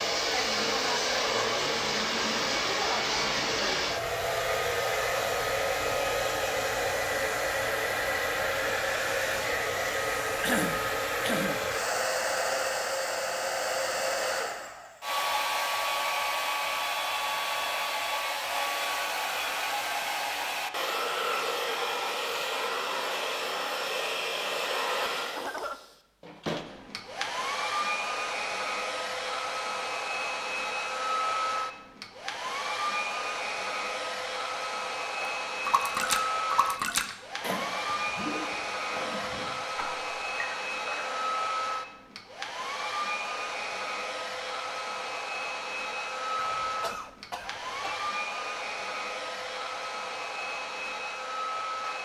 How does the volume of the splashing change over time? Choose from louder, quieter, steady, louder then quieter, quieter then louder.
quieter.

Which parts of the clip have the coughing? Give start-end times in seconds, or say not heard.
10.4-11.6, 25.1-25.8, 46.4-48.1.